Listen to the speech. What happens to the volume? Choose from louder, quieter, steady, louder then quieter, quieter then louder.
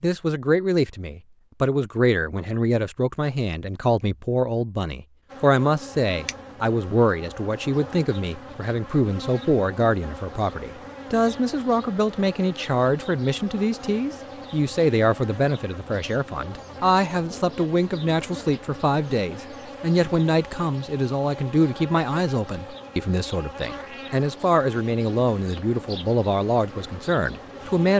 steady.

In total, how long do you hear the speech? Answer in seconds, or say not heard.
28 s.